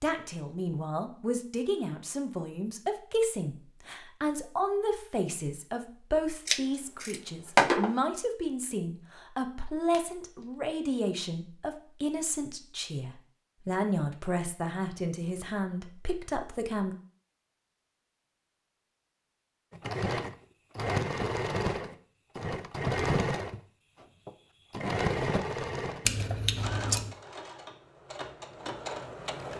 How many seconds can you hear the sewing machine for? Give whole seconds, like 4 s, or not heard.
10 s.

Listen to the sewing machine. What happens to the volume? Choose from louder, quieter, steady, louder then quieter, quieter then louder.
quieter.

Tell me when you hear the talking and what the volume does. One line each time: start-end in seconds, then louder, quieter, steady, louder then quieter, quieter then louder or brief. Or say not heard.
0.0-16.9 steady.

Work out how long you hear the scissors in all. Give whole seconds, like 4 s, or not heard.
3 s.